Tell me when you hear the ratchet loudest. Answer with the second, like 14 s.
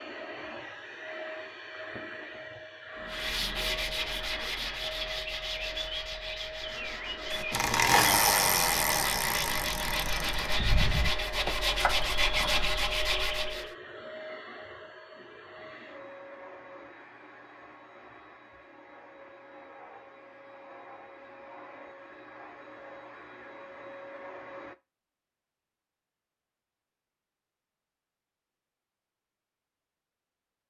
8 s.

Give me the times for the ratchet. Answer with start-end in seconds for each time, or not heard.
7.3-12.7.